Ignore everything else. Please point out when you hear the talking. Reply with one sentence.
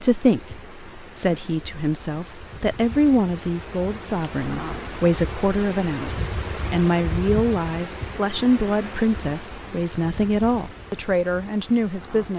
The talking can be heard from 0.0 to 12.3 s.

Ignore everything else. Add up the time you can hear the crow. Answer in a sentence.
You can't hear the crow here.